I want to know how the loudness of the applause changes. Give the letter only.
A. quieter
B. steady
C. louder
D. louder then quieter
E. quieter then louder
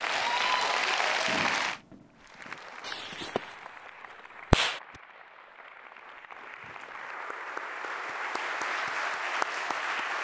E.